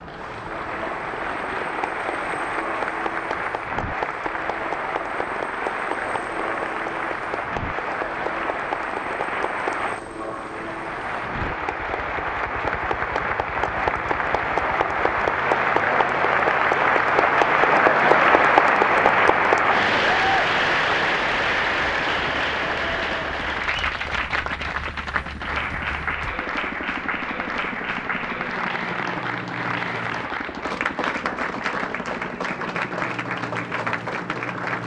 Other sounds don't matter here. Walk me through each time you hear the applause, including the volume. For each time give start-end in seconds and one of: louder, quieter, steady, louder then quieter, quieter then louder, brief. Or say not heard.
0.0-34.8 louder then quieter.